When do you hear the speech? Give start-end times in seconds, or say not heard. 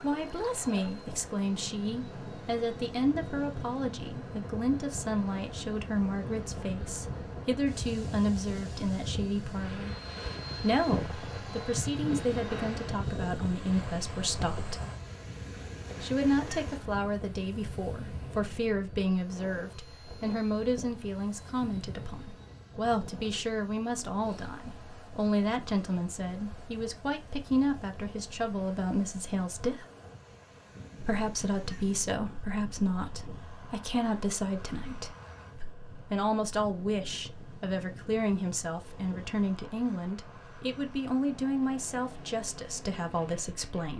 0.0-9.9, 10.6-14.8, 16.0-29.9, 31.0-43.9.